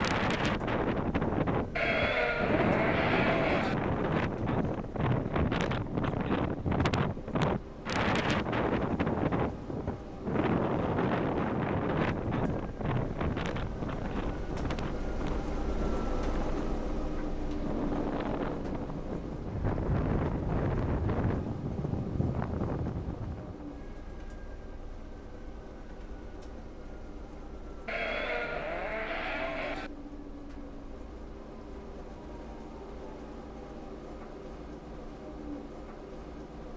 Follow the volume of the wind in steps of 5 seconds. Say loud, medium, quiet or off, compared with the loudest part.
loud, loud, loud, medium, loud, off, off, off.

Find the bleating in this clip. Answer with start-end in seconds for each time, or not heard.
1.8-3.8, 27.9-29.9.